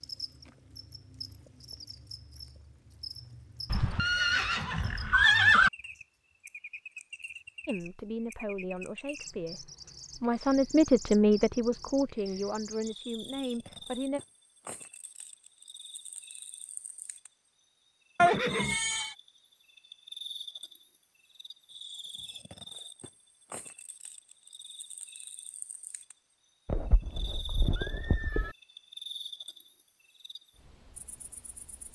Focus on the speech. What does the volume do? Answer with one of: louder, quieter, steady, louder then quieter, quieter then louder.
louder then quieter.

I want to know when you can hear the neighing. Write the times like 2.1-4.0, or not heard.
3.6-5.7, 18.1-19.1, 26.6-28.6.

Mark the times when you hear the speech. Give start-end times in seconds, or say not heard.
7.7-14.2.